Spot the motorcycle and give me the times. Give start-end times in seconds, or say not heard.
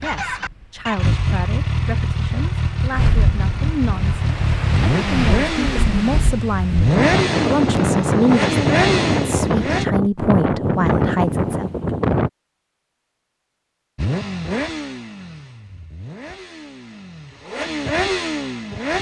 0.0-9.8, 13.9-18.9.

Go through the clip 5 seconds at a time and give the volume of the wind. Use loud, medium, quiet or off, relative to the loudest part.
medium, loud, loud, off.